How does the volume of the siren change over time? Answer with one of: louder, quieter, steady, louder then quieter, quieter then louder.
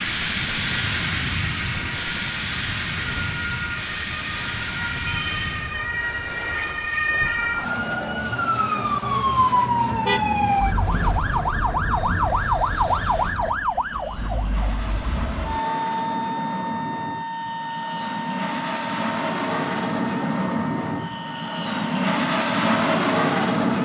louder then quieter.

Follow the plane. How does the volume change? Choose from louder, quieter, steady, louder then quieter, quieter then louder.
quieter then louder.